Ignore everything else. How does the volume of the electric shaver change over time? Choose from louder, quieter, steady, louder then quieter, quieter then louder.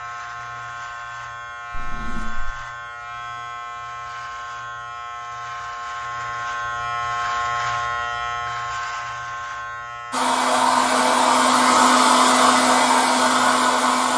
louder then quieter.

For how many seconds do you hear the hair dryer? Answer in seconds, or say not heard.
4 s.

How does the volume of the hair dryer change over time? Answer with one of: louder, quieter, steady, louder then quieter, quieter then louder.
steady.